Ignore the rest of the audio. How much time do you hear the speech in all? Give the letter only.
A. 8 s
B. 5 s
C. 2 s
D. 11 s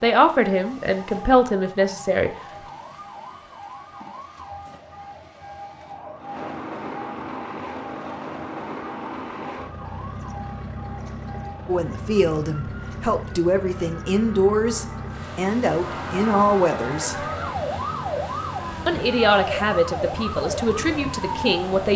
D.